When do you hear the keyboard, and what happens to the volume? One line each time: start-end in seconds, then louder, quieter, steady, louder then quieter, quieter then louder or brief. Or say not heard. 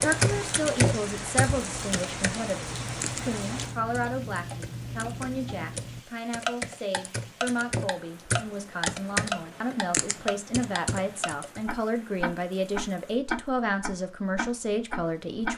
0.0-11.6 quieter then louder.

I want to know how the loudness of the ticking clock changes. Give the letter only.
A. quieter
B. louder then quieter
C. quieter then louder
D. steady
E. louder
E.